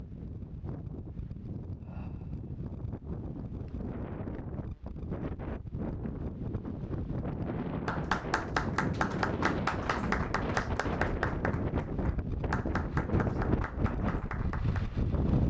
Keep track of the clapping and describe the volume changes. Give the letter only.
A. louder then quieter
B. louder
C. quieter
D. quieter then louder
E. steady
C.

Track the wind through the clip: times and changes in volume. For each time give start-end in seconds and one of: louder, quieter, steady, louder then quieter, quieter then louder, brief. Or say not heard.
0.0-15.4 louder.